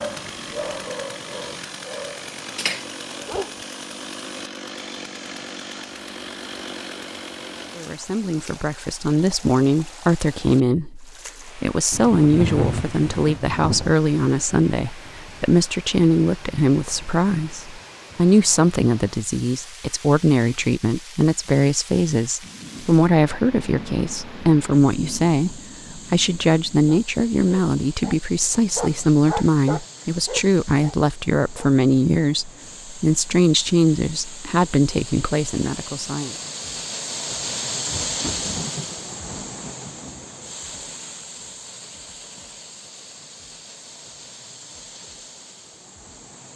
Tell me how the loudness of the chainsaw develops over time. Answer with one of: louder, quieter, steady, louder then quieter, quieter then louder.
steady.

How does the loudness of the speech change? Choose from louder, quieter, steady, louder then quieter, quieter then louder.
steady.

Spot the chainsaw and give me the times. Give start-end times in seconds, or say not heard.
0.0-8.1.